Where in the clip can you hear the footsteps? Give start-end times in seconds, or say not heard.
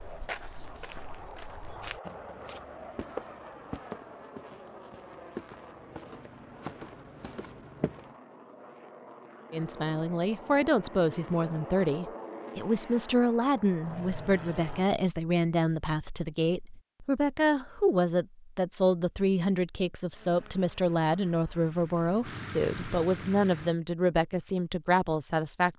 0.0-8.1.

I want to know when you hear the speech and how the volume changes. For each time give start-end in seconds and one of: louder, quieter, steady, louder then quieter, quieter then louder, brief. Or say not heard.
9.5-25.7 steady.